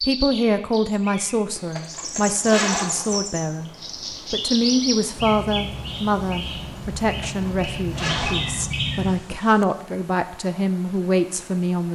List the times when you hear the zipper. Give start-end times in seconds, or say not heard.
1.6-3.2, 7.2-8.7.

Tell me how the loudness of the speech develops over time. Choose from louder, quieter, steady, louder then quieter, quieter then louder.
steady.